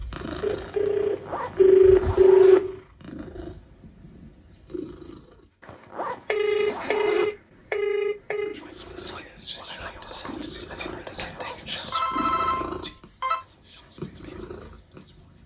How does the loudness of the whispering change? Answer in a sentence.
The volume of the whispering goes down.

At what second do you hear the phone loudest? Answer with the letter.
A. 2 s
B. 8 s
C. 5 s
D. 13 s
A.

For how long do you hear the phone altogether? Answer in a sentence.
The phone can be heard for 6 seconds in total.